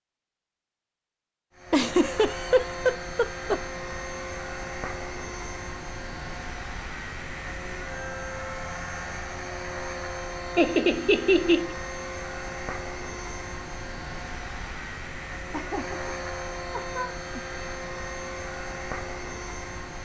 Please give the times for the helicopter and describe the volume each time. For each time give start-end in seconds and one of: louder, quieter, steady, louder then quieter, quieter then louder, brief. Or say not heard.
1.6-20.0 steady.